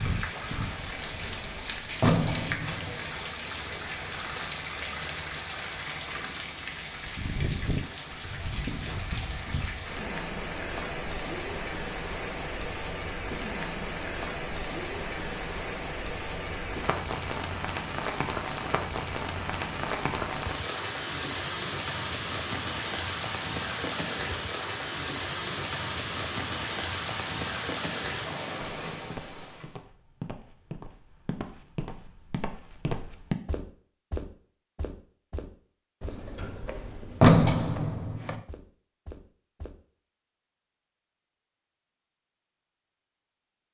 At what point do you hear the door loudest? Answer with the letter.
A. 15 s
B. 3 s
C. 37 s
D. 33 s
C.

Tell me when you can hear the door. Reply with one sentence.
The door can be heard from 0.8 to 3.0 s and from 36.0 to 38.4 s.